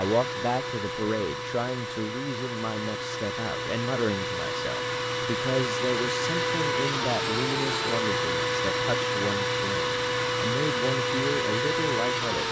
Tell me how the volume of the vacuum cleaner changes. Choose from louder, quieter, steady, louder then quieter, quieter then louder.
louder.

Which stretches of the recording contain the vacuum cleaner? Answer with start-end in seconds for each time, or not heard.
0.0-12.4.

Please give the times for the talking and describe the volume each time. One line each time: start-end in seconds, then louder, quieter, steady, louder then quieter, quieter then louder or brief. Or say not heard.
0.0-12.4 steady.